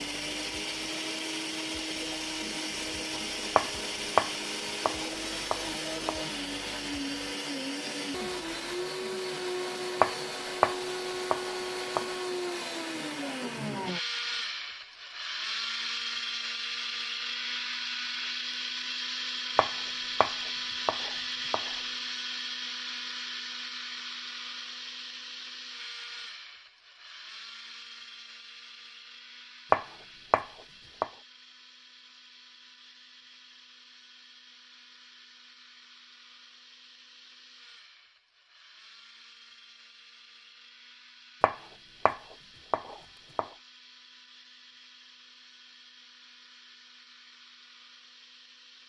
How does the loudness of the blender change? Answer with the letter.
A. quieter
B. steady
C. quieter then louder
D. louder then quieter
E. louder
A.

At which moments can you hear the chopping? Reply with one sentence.
The chopping can be heard from 3.5 to 6.2 s, from 10.0 to 12.2 s, from 19.6 to 21.7 s, from 29.7 to 31.1 s and from 41.4 to 43.5 s.